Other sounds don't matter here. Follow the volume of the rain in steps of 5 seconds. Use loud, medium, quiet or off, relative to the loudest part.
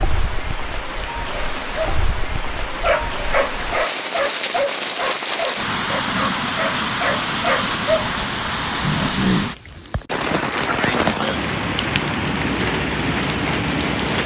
medium, loud, loud.